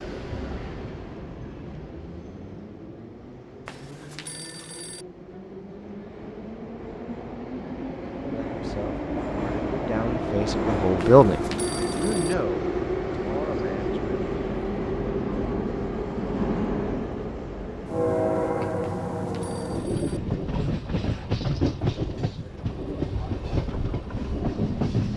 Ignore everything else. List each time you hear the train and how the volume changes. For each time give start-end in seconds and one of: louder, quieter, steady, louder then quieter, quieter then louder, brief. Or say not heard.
0.0-25.1 louder.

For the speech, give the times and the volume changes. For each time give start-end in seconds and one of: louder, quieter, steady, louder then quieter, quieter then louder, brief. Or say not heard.
8.2-14.2 louder then quieter.